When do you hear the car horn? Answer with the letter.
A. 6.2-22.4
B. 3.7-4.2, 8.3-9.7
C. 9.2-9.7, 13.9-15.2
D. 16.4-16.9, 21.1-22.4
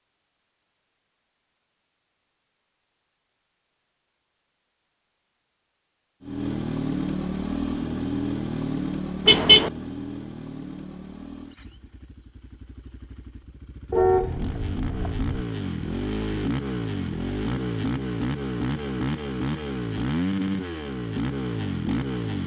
C.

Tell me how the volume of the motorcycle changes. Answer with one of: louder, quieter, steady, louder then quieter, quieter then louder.
quieter then louder.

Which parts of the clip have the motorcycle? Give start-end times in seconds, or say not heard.
6.2-22.4.